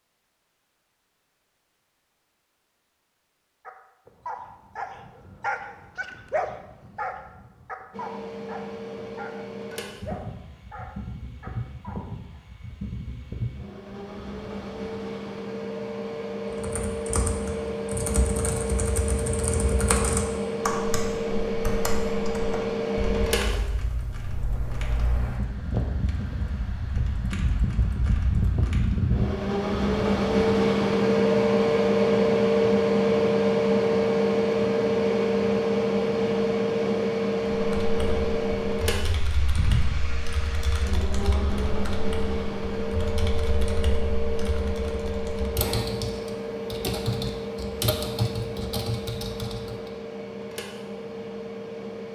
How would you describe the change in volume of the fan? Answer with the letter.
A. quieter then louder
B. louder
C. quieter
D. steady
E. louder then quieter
E.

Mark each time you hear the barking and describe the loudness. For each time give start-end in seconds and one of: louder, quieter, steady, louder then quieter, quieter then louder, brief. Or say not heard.
3.6-12.4 quieter.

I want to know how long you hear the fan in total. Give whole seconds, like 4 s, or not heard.
44 s.